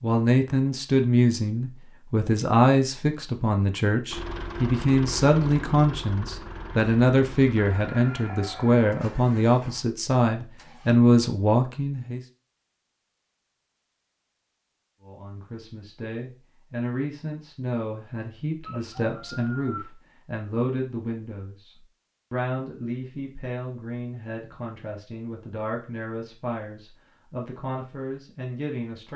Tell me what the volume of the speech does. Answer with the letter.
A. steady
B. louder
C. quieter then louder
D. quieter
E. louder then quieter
D.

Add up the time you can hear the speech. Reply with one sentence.
You can hear the speech for 26 seconds altogether.